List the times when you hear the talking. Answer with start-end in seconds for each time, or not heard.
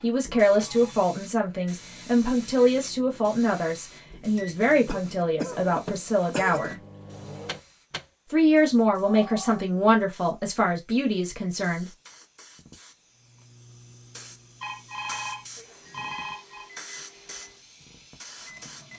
0.0-6.8, 8.3-11.9.